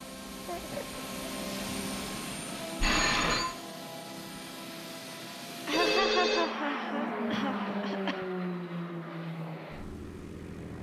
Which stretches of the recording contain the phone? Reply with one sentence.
You can hear the phone from 2.8 to 3.5 s and from 5.7 to 6.5 s.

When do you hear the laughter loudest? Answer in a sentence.
The volume of the laughter peaks at 6 seconds.